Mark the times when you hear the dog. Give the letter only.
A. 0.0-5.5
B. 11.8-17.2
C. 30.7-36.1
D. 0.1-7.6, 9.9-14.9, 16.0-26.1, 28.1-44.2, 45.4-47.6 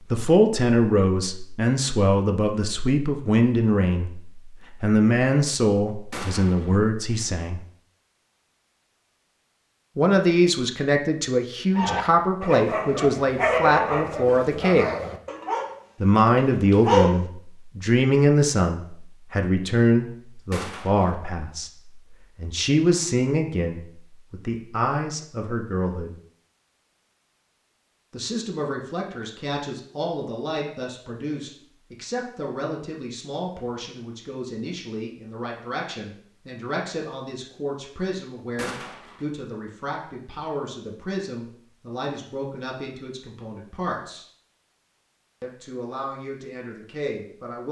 B.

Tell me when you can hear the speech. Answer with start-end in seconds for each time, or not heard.
0.1-7.6, 9.9-14.9, 16.0-26.1, 28.1-44.2, 45.4-47.6.